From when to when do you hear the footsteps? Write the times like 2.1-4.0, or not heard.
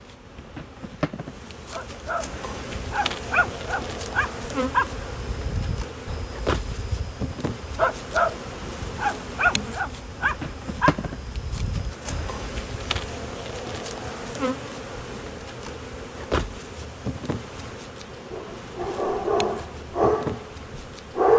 not heard.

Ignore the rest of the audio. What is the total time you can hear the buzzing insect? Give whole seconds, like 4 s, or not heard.
21 s.